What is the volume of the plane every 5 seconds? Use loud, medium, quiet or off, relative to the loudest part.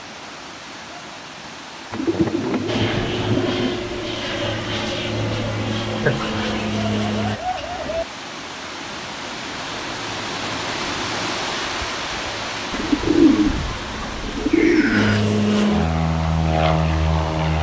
medium, medium, quiet, loud.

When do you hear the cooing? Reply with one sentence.
The cooing can be heard from 1.9 to 3.8 s, from 6.0 to 8.1 s and from 12.7 to 15.2 s.